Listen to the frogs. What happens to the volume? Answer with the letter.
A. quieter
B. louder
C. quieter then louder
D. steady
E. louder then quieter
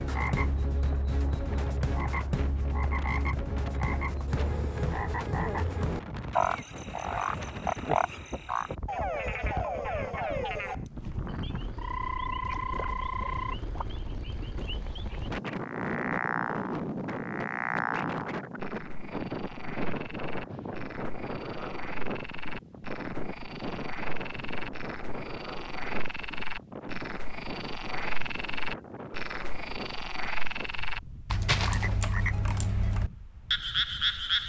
C.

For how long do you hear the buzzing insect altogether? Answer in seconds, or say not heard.
not heard.